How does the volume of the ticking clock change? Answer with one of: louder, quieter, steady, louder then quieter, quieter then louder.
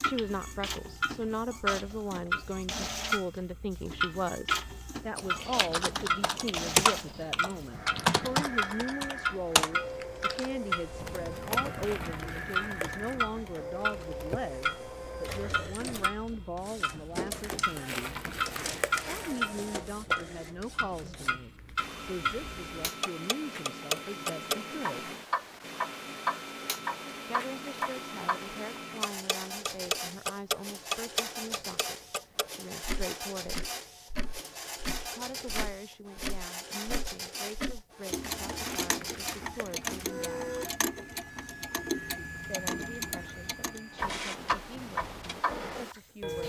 steady.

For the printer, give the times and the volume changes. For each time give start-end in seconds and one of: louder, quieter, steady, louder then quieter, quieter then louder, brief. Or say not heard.
0.0-46.4 steady.